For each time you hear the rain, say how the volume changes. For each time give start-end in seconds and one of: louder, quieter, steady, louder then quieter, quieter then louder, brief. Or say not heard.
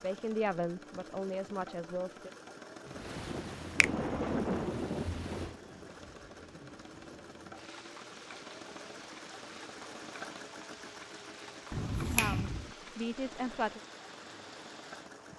2.9-15.3 quieter.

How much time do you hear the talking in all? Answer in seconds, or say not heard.
4 s.